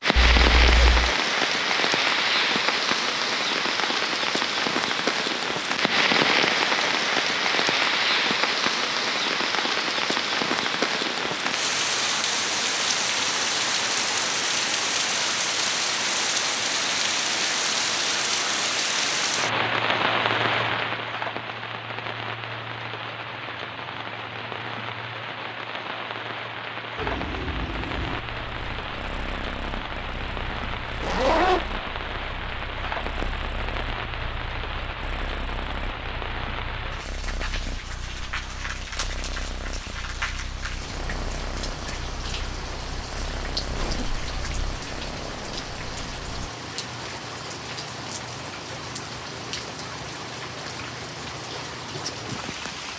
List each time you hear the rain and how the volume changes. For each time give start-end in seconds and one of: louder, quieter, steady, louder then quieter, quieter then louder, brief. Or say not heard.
0.0-52.9 quieter.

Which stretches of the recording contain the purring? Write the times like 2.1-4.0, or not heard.
26.9-46.5.